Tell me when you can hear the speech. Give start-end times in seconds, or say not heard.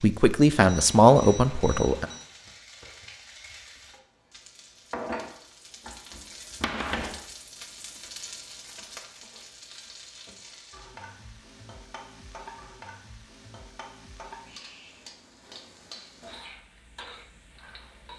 0.0-2.0.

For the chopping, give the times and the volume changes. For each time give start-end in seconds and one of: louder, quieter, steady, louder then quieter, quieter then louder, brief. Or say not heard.
not heard.